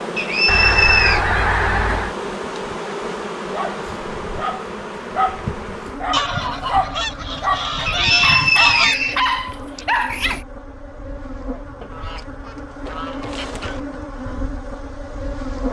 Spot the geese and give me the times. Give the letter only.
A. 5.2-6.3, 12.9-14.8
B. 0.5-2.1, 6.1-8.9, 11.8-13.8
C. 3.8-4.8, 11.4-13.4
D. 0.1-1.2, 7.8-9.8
B.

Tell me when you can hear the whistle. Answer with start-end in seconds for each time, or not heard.
0.1-1.2, 7.8-9.8.